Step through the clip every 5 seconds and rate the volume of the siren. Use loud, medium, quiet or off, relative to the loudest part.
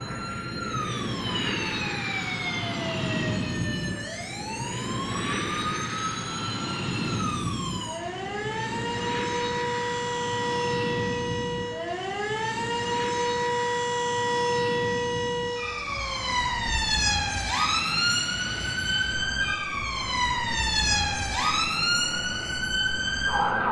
medium, medium, loud, loud, loud.